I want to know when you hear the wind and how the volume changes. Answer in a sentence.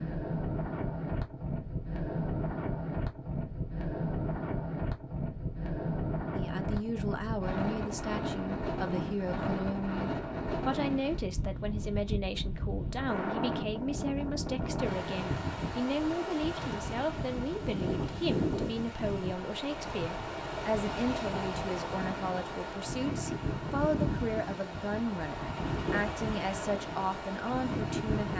You can hear the wind from 0.0 to 28.3 s, at a steady volume.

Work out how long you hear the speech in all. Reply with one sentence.
You can hear the speech for 22 seconds altogether.